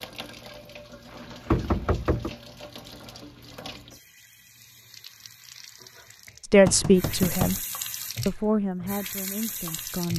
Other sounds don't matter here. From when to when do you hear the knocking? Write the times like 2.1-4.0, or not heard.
1.4-2.4, 6.7-7.6.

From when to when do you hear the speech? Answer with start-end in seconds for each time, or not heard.
6.5-7.5, 8.2-10.1.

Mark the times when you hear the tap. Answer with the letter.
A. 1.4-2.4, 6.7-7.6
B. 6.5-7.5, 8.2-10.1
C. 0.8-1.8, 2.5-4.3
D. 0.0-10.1
D.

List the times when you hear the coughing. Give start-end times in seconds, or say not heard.
not heard.